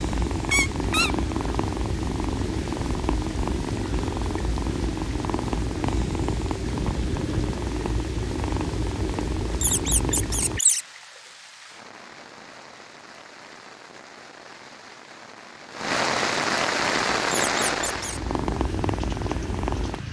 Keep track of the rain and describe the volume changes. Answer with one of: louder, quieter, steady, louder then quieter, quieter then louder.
louder.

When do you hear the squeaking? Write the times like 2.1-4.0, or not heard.
0.5-1.1, 9.6-10.8, 17.3-18.2.